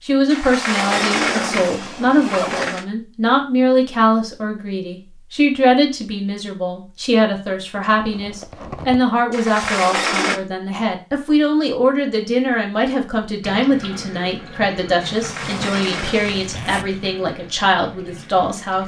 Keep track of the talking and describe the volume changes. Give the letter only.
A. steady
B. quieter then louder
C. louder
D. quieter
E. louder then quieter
A.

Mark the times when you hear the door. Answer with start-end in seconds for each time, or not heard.
0.3-2.9, 9.3-10.4, 15.0-16.6.